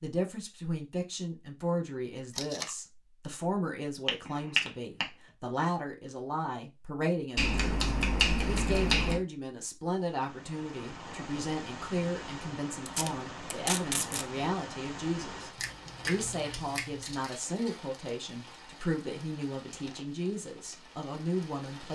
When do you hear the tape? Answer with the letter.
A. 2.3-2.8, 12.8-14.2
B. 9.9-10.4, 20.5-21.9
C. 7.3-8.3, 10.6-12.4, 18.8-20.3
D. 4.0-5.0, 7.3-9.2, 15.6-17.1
A.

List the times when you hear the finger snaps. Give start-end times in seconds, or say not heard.
4.0-5.0, 7.3-9.2, 15.6-17.1.